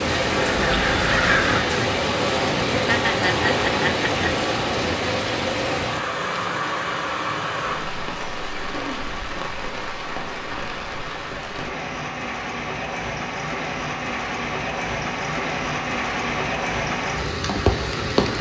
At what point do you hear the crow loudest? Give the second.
1 s.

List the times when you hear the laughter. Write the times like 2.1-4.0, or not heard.
2.7-4.3.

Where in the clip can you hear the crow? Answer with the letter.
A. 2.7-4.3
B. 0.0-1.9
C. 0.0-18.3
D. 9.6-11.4
B.